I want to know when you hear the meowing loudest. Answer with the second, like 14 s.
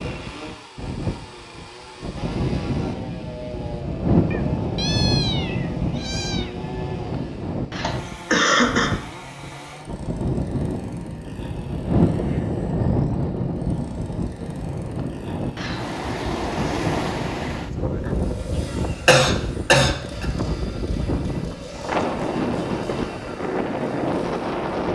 5 s.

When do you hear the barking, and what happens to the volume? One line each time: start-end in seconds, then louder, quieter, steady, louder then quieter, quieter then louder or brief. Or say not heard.
not heard.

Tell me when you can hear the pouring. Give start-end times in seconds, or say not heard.
not heard.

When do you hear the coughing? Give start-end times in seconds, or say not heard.
7.8-8.9, 19.1-20.2.